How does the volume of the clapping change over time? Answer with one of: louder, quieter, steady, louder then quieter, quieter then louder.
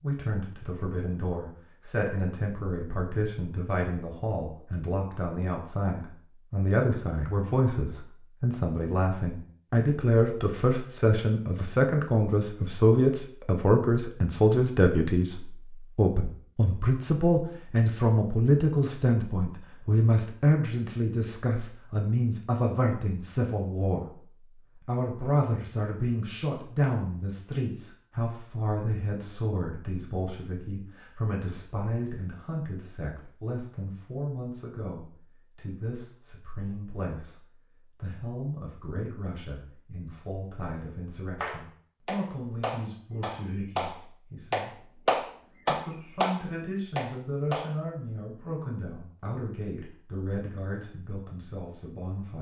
louder.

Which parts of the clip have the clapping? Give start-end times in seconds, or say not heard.
41.4-47.7.